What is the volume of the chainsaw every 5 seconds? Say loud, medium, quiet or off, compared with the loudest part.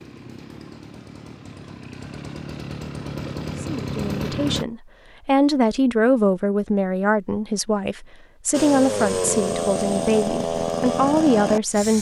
medium, loud, loud.